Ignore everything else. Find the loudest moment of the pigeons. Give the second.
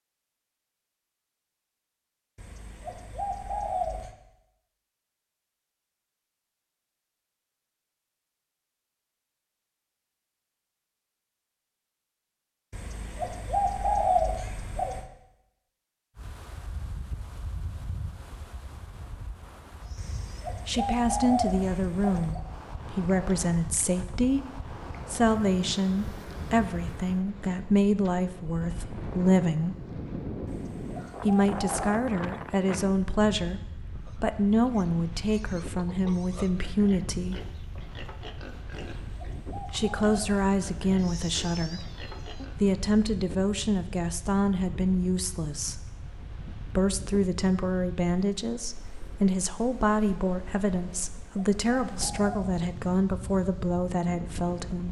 14 s.